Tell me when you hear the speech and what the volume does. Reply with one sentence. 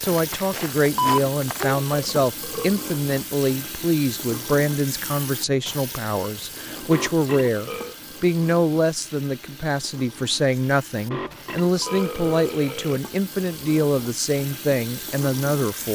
The speech can be heard from 0.0 to 15.9 s, at a steady volume.